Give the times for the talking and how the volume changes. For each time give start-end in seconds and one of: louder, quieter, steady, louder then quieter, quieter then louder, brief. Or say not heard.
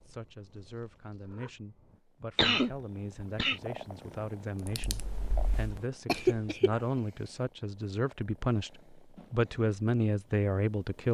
0.0-11.1 louder.